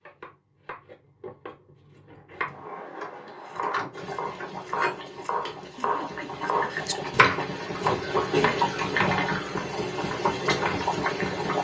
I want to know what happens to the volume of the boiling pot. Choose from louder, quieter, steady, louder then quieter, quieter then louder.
louder.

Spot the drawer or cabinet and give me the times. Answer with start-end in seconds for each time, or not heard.
2.5-4.0.